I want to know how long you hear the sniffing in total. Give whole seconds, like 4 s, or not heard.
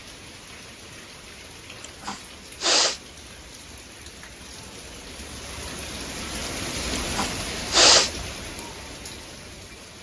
2 s.